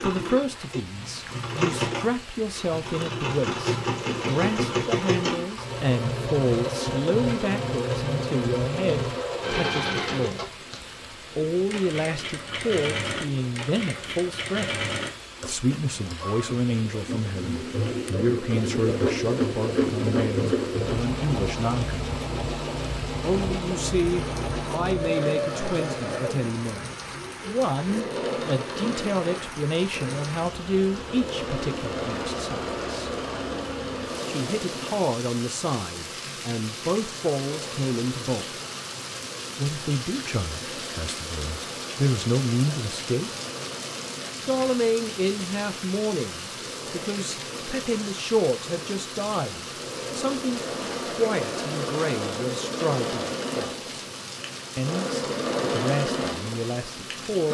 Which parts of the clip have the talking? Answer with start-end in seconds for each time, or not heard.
0.0-22.0, 23.2-33.1, 34.2-38.5, 39.5-43.3, 44.4-53.8, 54.8-57.5.